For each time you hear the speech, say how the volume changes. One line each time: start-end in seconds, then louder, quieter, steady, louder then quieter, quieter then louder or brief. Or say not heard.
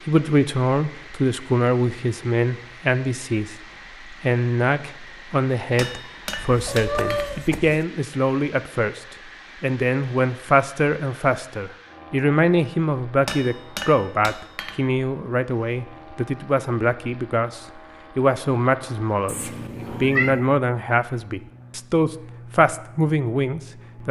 0.1-24.0 steady.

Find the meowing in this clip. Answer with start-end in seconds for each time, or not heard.
6.3-7.8, 19.2-20.5.